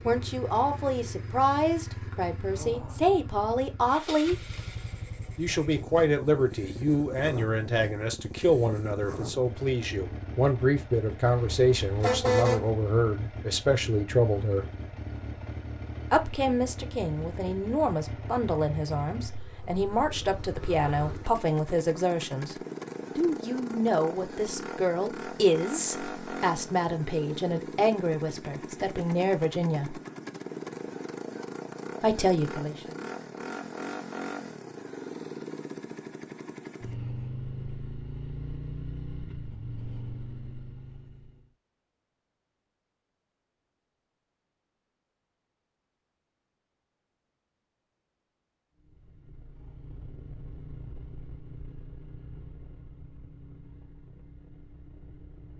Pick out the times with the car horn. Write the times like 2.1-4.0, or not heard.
11.2-12.7.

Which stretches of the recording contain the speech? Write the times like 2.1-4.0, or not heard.
0.1-4.3, 5.3-14.7, 16.1-22.6, 23.1-30.0, 32.0-32.8.